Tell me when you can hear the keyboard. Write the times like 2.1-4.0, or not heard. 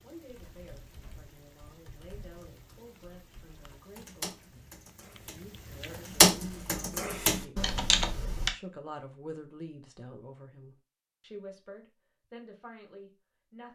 0.2-8.5.